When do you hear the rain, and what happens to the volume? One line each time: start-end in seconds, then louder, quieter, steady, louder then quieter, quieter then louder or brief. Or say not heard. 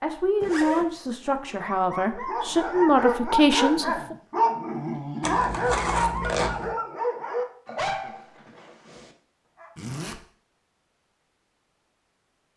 not heard.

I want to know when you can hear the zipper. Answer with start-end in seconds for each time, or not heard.
0.4-0.9, 5.2-6.7, 9.8-10.2.